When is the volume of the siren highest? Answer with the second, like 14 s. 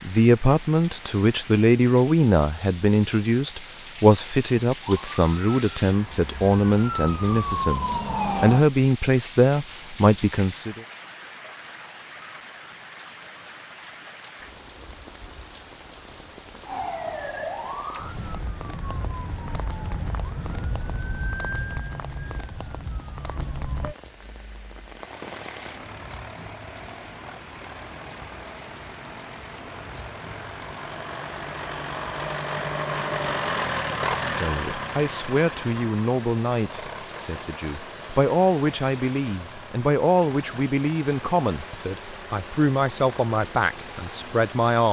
8 s.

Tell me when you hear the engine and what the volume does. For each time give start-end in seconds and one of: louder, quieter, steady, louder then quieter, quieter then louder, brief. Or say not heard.
23.9-44.7 louder then quieter.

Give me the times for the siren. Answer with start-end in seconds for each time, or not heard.
4.8-8.7, 16.6-23.9.